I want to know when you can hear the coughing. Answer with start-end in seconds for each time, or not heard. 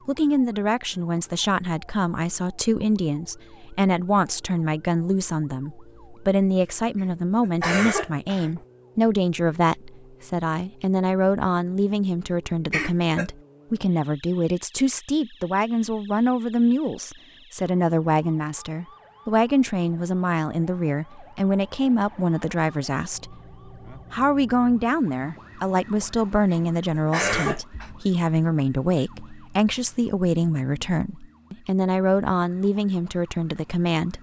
7.0-8.6, 12.7-13.3, 26.5-27.9.